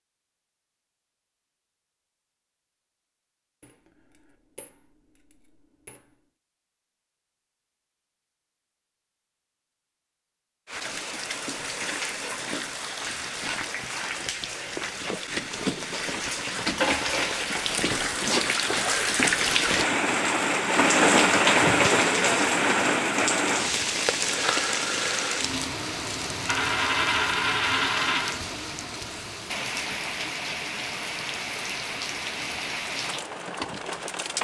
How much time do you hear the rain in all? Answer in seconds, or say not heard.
24 s.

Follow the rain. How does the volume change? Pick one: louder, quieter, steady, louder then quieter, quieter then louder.
louder then quieter.